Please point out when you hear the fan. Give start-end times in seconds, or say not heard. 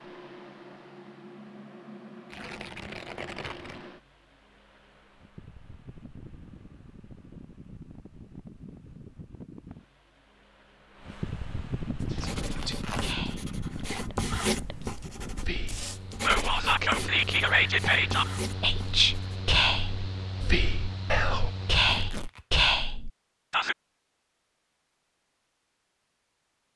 0.0-22.1.